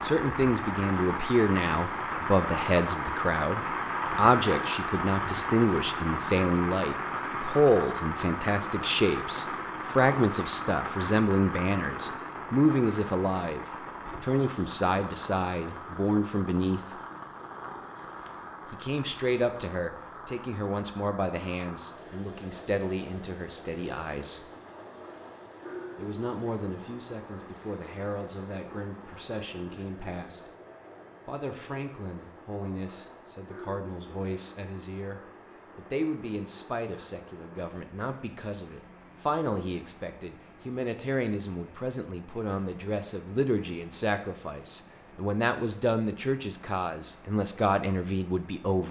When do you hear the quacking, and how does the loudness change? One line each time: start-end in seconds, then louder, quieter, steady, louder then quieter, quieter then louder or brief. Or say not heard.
not heard.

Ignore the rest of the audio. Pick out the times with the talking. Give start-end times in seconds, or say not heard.
0.0-17.0, 18.6-24.5, 25.9-30.5, 31.2-48.8.